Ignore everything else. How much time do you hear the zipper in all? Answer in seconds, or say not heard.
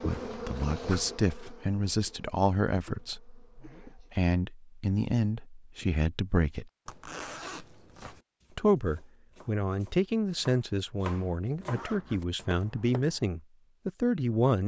3 s.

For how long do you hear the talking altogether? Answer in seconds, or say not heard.
13 s.